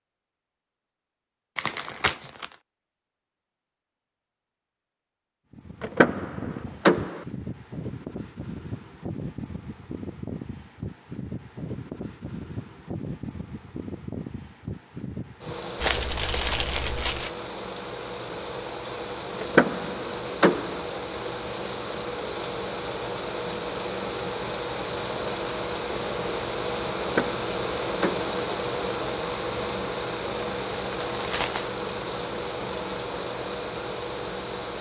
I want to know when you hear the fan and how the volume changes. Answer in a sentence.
The fan can be heard from 5.5 to 34.7 s, getting louder.